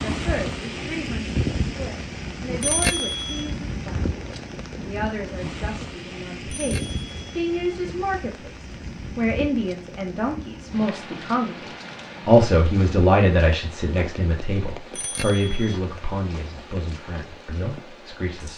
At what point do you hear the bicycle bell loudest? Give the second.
3 s.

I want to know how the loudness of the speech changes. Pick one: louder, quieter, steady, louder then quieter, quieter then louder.
louder then quieter.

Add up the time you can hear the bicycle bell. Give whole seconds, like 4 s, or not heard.
3 s.